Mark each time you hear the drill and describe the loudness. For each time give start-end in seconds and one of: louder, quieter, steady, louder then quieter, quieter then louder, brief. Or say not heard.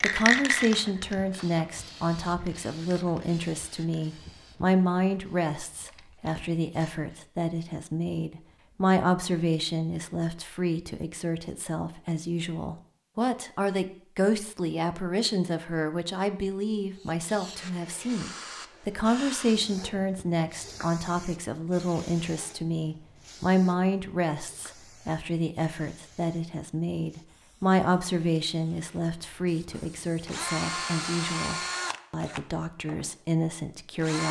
29.7-34.2 quieter.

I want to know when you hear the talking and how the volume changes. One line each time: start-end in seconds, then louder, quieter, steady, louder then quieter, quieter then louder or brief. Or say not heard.
0.0-34.2 steady.